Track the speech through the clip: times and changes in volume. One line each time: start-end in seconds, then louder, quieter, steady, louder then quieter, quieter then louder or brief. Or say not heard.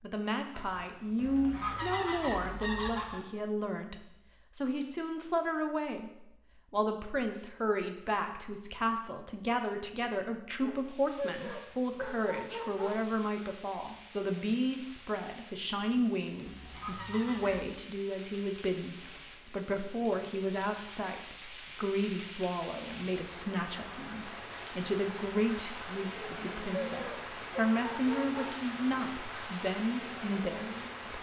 0.0-31.1 steady.